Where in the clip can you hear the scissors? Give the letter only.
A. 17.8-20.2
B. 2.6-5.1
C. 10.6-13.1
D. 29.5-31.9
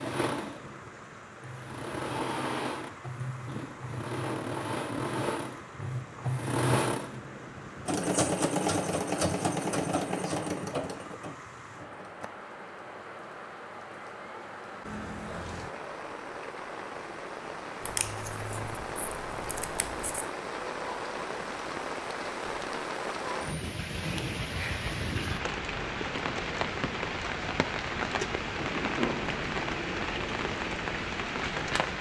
A.